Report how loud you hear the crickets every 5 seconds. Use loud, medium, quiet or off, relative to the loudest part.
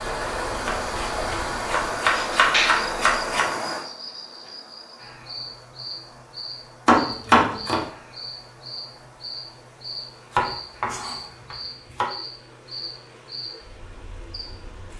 loud, medium, medium.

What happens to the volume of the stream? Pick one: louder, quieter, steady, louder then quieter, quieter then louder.
quieter.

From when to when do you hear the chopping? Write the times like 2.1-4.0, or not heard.
0.7-3.5, 6.8-7.8, 10.3-12.1.